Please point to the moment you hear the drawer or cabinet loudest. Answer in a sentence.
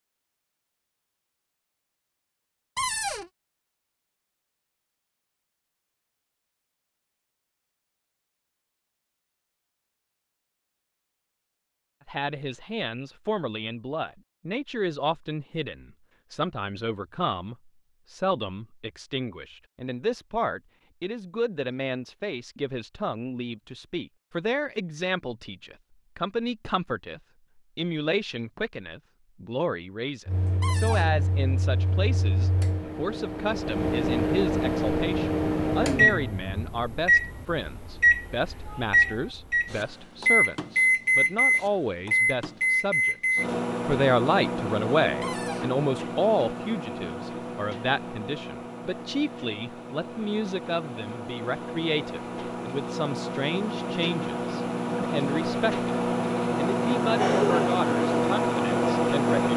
The loudest moment of the drawer or cabinet is at 3 seconds.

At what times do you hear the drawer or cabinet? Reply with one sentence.
You can hear the drawer or cabinet from 2.8 to 3.3 s, from 30.6 to 31.1 s and from 45.2 to 45.8 s.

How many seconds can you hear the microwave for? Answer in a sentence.
The microwave can be heard for 29 seconds in total.